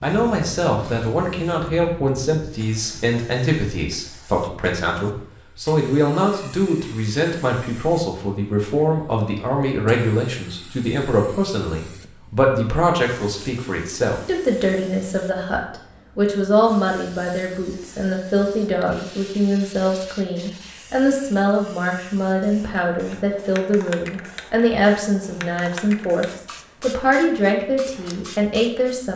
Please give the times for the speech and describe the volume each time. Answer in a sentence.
The speech can be heard from 0.0 to 29.1 s, at a steady volume.